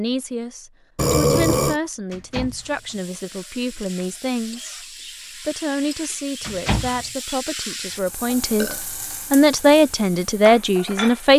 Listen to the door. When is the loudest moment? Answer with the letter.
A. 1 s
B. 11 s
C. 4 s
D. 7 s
D.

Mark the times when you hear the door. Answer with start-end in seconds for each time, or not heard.
2.1-3.0, 6.4-7.1.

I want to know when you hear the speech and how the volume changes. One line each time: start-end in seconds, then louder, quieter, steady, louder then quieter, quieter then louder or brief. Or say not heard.
0.0-11.3 louder.